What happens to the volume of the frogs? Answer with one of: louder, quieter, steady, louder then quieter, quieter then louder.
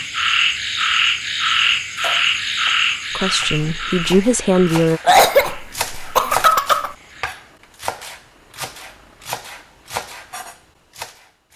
quieter.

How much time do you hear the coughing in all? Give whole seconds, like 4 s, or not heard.
2 s.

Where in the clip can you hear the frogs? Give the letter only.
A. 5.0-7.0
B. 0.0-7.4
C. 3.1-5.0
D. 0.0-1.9
B.